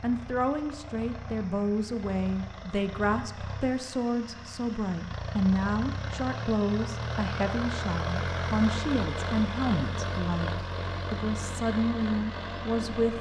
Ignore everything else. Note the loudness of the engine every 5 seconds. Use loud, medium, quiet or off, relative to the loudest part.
medium, loud, loud.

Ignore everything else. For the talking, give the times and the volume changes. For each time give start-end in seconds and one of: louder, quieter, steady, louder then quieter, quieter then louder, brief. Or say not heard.
0.0-13.1 steady.